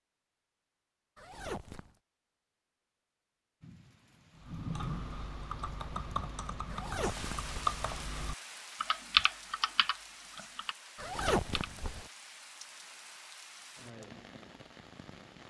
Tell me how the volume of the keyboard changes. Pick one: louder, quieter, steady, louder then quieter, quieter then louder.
louder then quieter.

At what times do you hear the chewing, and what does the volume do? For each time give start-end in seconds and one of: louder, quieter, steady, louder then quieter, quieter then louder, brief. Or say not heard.
not heard.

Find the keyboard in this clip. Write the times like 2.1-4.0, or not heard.
4.4-11.7.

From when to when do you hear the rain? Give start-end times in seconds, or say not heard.
3.6-15.4.